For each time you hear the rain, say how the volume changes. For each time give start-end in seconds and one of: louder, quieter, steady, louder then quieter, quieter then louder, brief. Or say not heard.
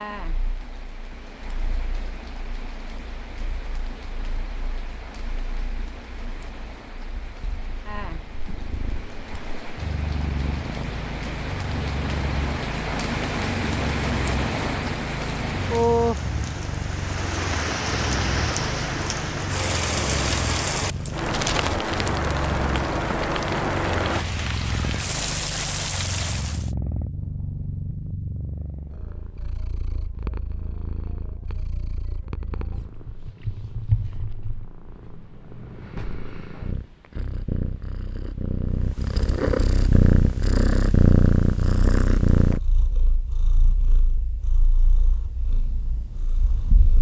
0.0-26.7 louder.